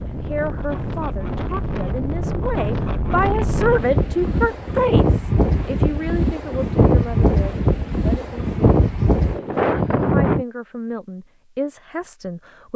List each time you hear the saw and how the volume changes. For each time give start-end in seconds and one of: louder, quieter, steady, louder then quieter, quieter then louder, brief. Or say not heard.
not heard.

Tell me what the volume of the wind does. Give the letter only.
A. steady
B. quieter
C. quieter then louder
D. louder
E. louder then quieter
D.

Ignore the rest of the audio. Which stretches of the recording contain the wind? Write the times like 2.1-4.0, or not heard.
0.0-10.4.